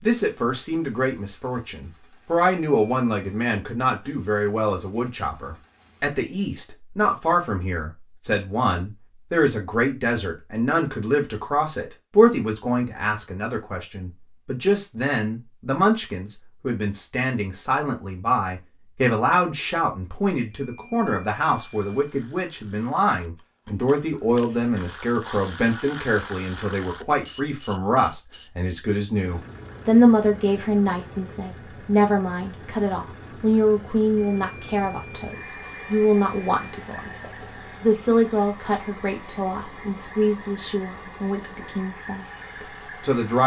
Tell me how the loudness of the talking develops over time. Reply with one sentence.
The volume of the talking stays about the same.